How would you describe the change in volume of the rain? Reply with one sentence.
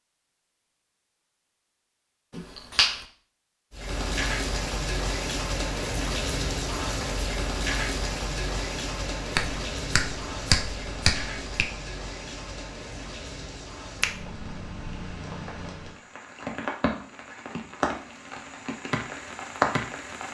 The volume of the rain goes down, then up.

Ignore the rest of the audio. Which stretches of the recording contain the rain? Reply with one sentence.
You can hear the rain from 3.7 to 20.2 s.